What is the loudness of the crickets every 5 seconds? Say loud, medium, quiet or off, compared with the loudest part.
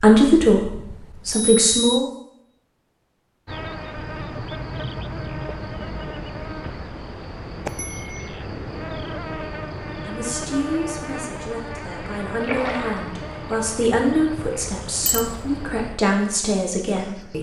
loud, loud, loud, medium.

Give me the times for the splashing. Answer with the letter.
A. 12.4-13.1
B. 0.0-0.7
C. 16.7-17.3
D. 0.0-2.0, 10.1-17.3
A.